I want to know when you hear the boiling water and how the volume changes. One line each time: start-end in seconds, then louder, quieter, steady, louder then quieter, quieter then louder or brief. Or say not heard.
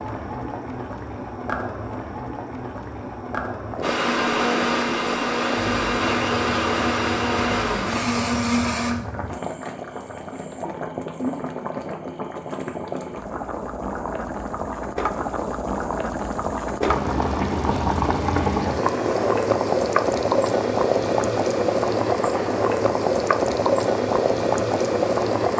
0.0-25.5 louder.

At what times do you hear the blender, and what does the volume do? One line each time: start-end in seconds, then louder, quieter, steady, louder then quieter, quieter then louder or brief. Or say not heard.
3.8-8.9 steady.